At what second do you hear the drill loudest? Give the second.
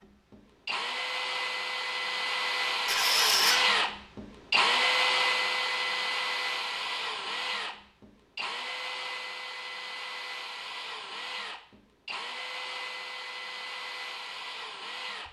5 s.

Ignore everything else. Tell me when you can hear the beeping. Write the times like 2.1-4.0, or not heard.
not heard.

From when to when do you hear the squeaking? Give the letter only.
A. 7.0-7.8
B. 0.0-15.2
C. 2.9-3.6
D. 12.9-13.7
C.